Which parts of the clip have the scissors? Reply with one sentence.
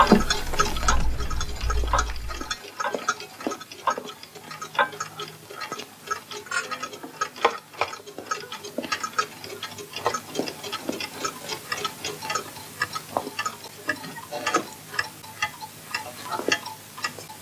The scissors can't be heard in this clip.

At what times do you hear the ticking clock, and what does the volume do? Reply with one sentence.
The ticking clock can be heard from 0.0 to 17.3 s, at a steady volume.